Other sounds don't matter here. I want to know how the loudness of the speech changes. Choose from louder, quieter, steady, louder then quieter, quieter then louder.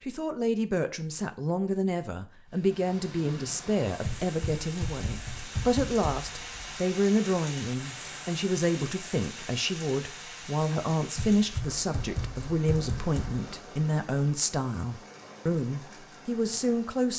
steady.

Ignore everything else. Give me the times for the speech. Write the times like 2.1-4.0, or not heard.
0.0-17.1.